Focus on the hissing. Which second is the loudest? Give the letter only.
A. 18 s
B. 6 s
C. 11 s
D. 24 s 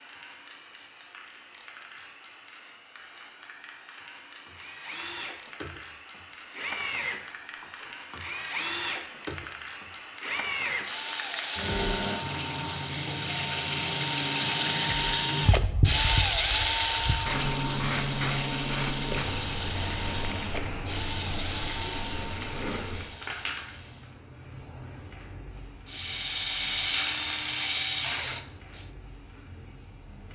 A.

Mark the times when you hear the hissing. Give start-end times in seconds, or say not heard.
0.0-30.2.